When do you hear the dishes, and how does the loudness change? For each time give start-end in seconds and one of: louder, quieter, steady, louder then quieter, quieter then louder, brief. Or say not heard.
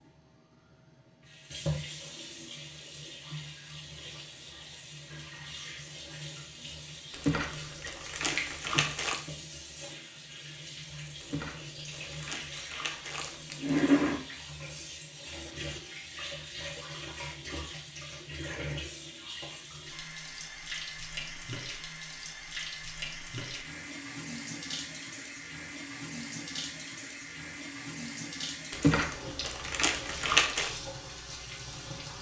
not heard.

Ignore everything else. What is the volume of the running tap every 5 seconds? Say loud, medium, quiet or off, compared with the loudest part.
medium, medium, loud, medium, medium, medium, medium.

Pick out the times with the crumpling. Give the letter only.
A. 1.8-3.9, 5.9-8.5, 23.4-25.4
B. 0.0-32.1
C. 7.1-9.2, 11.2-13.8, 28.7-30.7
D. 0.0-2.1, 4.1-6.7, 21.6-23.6
C.